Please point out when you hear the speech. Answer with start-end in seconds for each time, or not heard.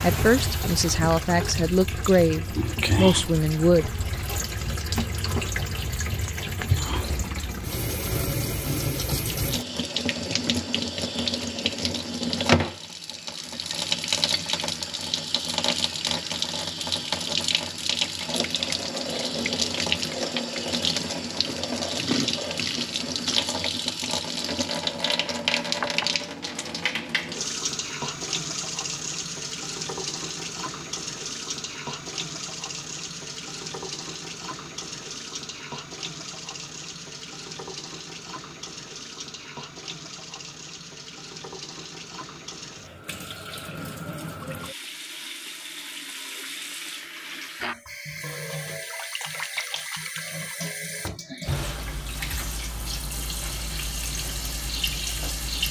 0.0-3.9.